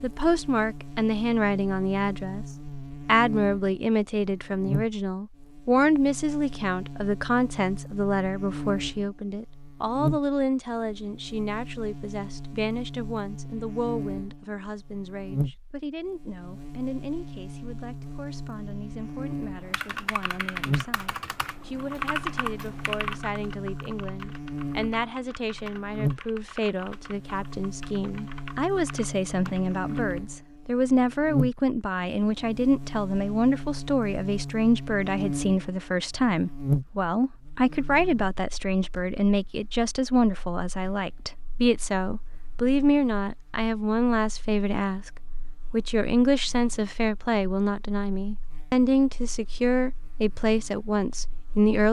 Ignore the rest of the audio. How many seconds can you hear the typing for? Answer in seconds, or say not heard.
11 s.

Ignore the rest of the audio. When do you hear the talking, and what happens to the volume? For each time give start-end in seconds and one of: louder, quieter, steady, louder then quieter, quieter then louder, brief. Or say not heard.
0.0-2.5 brief
3.0-51.8 quieter then louder.